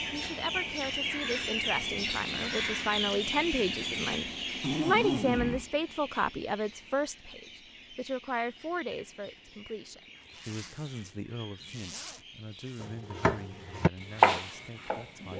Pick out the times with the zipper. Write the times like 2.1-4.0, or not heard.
4.6-5.7, 10.3-12.8.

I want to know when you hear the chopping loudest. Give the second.
14 s.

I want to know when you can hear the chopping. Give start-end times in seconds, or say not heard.
12.8-15.3.